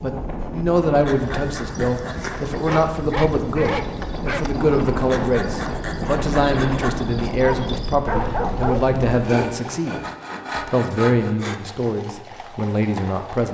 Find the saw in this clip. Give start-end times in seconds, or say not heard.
0.9-2.5, 5.0-6.9, 9.1-11.6.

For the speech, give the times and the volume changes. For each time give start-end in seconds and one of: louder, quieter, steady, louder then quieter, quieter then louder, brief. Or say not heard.
0.0-10.0 steady
10.7-13.4 brief.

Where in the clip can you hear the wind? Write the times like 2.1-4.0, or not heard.
0.0-9.2.